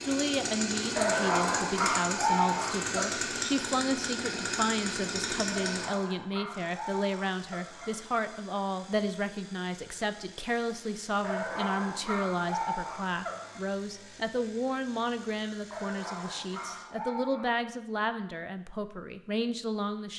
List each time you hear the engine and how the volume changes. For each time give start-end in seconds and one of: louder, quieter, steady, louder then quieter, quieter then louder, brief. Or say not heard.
0.0-16.9 quieter.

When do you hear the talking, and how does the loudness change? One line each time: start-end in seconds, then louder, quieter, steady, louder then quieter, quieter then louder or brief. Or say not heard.
0.0-20.1 steady.